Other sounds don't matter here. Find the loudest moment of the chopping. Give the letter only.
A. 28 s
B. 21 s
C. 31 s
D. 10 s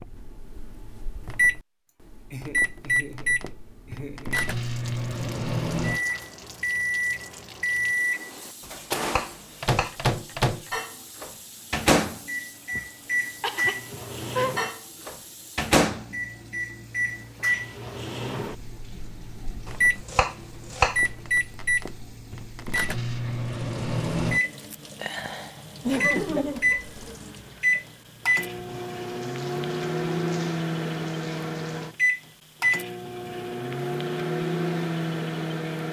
B.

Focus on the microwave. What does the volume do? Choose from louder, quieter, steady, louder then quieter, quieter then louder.
steady.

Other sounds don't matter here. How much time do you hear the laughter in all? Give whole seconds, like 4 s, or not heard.
5 s.